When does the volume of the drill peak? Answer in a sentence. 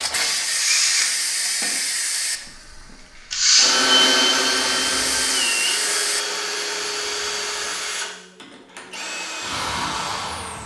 The volume of the drill peaks at 4 seconds.